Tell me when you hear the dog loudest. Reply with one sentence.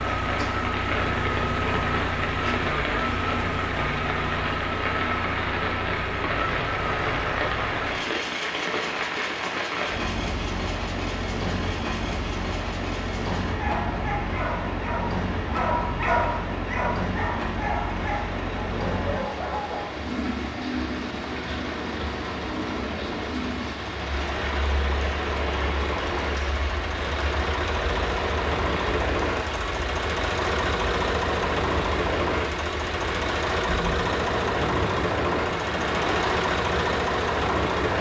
The volume of the dog peaks at 16 seconds.